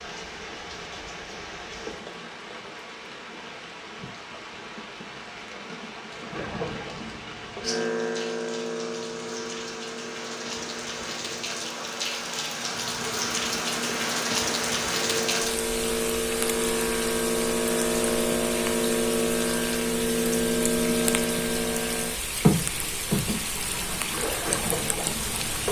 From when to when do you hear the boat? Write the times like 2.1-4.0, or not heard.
6.1-25.6.